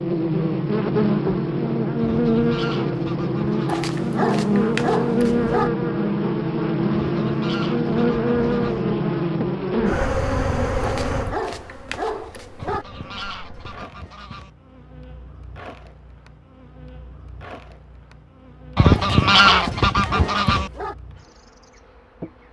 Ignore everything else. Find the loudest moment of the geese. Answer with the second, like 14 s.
19 s.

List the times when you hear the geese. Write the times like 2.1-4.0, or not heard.
2.0-3.9, 7.0-8.8, 12.6-14.5, 18.8-20.7.